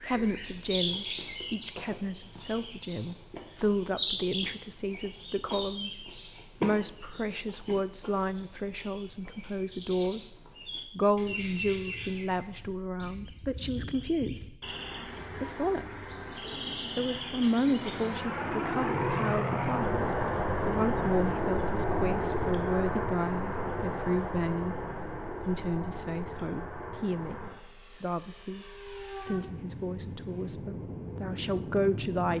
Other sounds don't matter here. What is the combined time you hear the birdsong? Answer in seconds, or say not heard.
18 s.